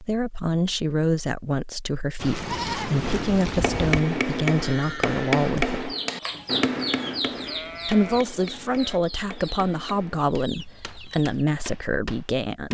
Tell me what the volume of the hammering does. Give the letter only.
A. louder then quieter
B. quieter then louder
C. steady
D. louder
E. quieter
E.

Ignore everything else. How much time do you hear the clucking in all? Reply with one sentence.
You can hear the clucking for 6 seconds altogether.